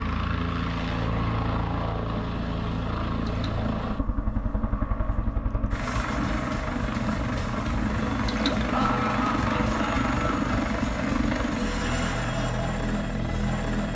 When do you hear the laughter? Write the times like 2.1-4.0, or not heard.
8.7-10.5.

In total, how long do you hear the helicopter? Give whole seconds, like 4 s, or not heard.
14 s.